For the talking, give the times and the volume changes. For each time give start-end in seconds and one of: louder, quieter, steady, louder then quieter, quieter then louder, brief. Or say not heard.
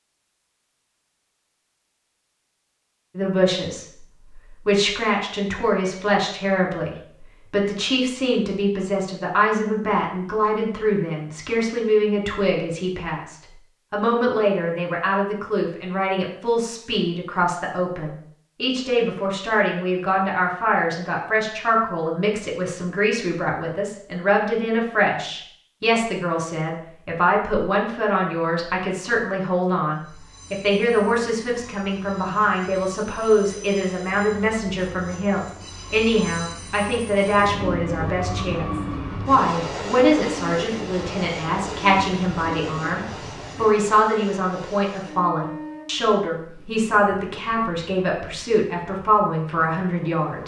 3.1-50.4 steady.